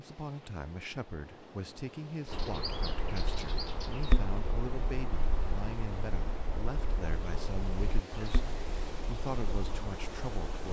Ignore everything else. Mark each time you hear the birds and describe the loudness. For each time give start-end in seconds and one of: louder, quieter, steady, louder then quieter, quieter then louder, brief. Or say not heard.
2.2-10.3 quieter.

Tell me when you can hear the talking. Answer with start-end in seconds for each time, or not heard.
0.0-10.6.